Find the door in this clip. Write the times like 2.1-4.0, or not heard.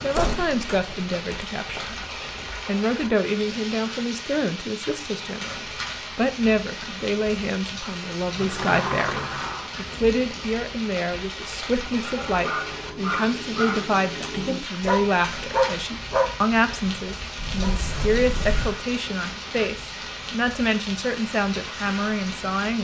0.1-1.9, 8.3-9.7, 17.4-18.8.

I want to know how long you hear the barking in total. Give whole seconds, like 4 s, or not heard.
6 s.